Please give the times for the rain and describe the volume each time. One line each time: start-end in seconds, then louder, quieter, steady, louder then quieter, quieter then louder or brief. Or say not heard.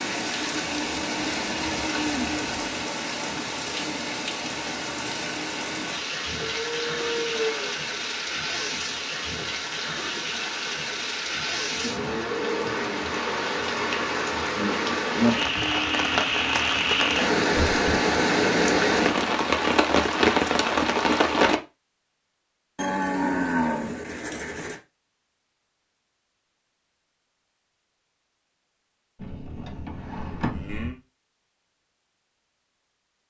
0.0-21.6 louder.